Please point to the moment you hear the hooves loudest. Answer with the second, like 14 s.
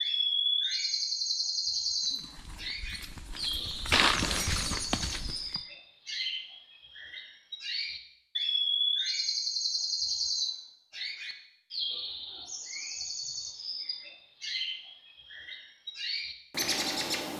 4 s.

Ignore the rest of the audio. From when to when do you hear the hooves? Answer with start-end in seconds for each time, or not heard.
2.0-5.7.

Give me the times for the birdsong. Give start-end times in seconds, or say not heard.
0.0-17.3.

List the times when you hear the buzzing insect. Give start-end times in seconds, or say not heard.
not heard.